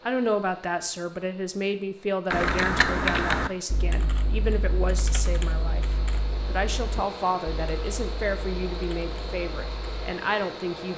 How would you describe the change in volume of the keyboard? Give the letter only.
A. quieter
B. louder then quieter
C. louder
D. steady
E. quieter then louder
A.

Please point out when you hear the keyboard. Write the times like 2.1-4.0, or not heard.
2.3-10.2.